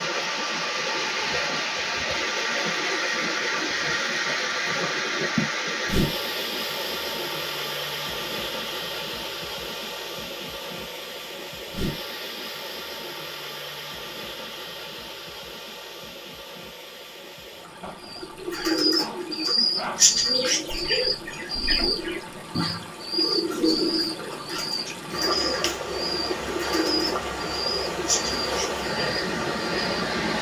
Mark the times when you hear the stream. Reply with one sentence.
The stream can be heard from 0.0 to 30.3 s.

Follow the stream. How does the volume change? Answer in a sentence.
The volume of the stream goes down, then up.